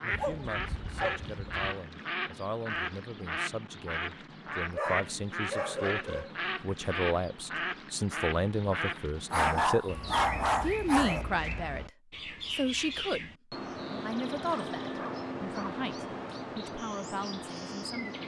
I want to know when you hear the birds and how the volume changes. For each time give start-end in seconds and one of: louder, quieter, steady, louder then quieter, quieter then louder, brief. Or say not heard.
0.0-18.2 steady.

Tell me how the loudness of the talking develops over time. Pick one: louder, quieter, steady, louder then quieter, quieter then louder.
louder then quieter.